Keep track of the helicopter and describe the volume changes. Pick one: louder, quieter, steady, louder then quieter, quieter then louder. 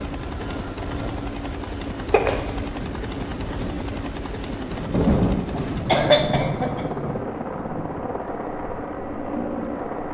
steady.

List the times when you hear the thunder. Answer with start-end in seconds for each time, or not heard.
4.9-7.2.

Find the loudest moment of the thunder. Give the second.
5 s.